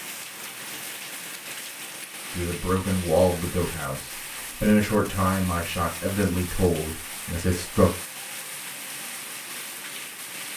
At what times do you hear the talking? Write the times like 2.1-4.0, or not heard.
2.4-7.9.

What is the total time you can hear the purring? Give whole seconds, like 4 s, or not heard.
not heard.